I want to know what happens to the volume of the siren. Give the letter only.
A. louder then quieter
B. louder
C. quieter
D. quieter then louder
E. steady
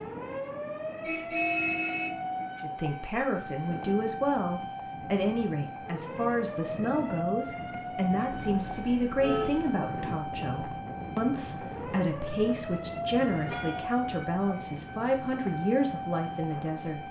E.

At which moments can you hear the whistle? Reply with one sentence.
The whistle can't be heard in this clip.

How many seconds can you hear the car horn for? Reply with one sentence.
You can hear the car horn for 3 seconds altogether.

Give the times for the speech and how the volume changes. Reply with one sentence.
You can hear the speech from 2.6 to 17.0 s, at a steady volume.